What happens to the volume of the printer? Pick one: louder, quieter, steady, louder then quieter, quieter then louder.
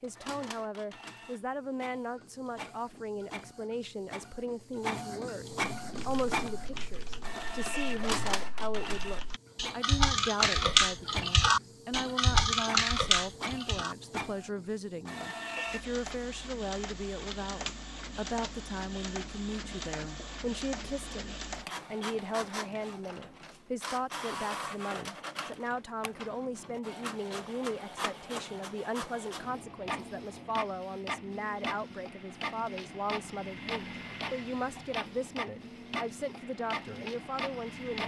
steady.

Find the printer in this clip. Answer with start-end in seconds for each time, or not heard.
0.0-38.0.